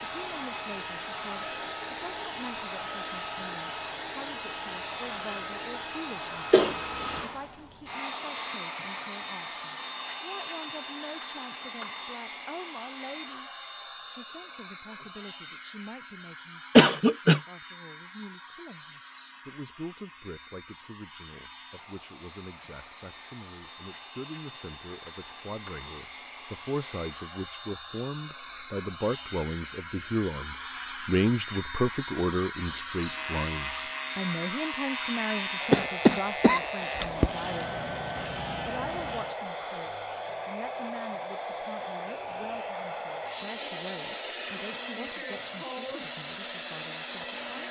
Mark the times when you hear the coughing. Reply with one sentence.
The coughing can be heard from 6.5 to 7.2 s, from 16.8 to 17.4 s and from 35.7 to 37.3 s.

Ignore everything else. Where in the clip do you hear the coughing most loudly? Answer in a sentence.
The volume of the coughing peaks at 17 seconds.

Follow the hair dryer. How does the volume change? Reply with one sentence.
The loudness of the hair dryer goes down, then up.